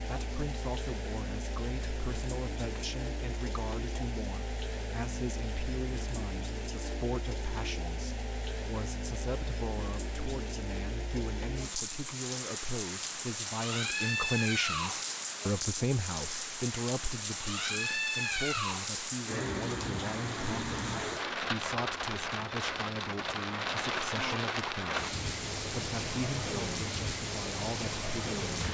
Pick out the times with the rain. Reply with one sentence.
You can hear the rain from 0.0 to 28.6 s.